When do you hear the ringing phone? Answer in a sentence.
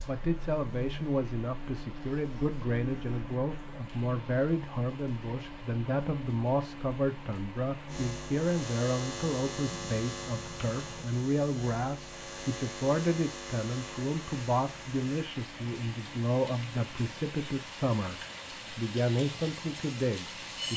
You can't hear the ringing phone here.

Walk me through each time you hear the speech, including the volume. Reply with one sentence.
You can hear the speech from 0.0 to 20.7 s, at a steady volume.